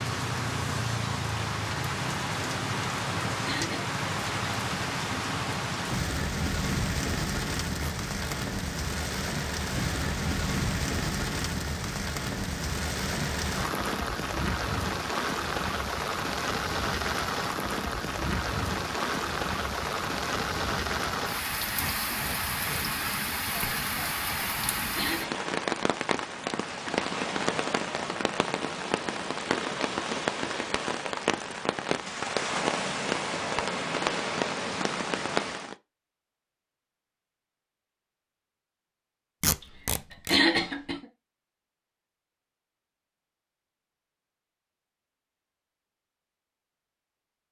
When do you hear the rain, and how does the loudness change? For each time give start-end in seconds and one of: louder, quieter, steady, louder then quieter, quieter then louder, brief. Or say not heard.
0.0-35.8 steady.